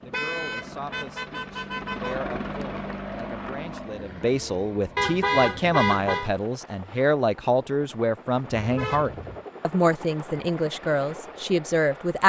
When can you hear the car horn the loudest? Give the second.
5 s.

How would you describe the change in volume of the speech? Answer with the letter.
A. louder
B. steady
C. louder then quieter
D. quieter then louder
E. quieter
A.